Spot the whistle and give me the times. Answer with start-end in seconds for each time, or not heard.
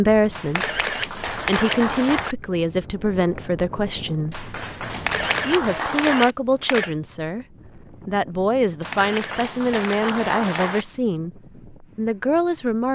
not heard.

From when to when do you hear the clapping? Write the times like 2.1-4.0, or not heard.
0.3-2.4, 4.3-6.3, 8.8-10.8.